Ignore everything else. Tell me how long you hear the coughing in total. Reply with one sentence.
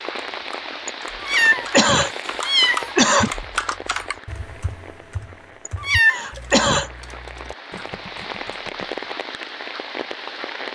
You can hear the coughing for 4 seconds altogether.